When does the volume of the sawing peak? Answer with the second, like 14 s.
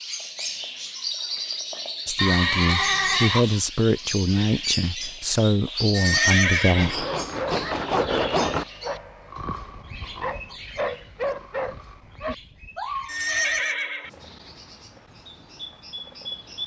8 s.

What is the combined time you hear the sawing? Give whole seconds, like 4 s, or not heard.
2 s.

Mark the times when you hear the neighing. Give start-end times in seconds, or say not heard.
2.1-3.6, 5.9-7.0, 13.1-14.1.